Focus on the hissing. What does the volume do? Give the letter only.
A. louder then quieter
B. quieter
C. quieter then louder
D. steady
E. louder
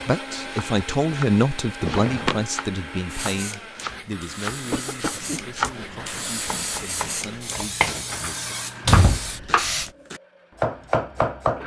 E.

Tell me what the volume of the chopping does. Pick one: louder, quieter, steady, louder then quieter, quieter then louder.
louder.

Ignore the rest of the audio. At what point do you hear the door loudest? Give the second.
9 s.